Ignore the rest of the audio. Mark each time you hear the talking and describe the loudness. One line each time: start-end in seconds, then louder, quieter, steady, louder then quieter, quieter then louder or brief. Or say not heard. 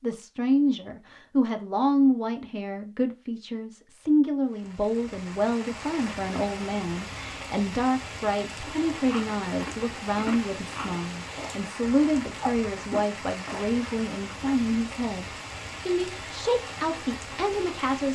0.0-18.1 steady.